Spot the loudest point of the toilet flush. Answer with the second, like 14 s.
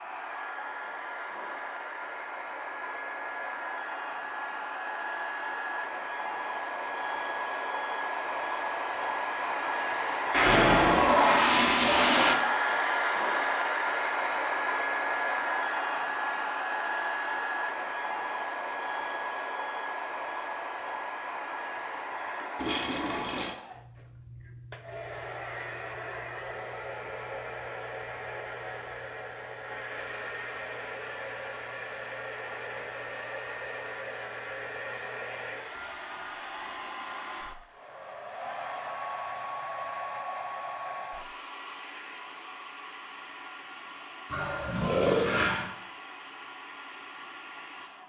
11 s.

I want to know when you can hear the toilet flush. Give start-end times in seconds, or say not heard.
10.3-12.3, 22.6-23.6, 44.3-45.7.